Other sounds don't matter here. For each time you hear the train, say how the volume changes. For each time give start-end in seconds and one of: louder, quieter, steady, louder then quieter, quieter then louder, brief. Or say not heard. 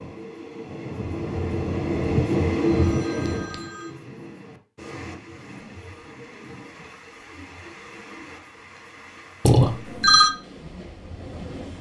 0.0-11.7 quieter.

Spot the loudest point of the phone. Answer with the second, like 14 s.
10 s.